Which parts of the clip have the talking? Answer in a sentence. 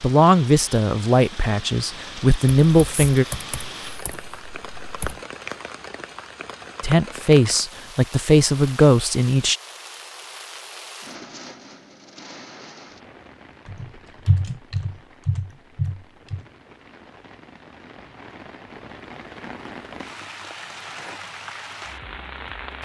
The talking can be heard from 0.0 to 3.2 s and from 6.8 to 9.6 s.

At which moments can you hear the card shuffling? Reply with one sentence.
The card shuffling can't be heard in this clip.